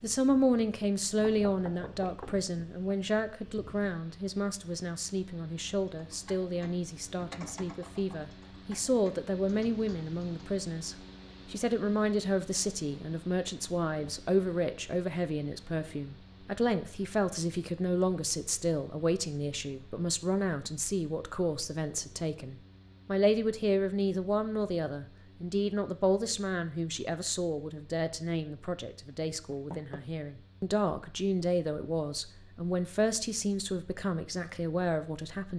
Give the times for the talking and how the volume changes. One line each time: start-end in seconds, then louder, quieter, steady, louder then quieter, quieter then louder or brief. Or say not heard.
0.0-35.5 steady.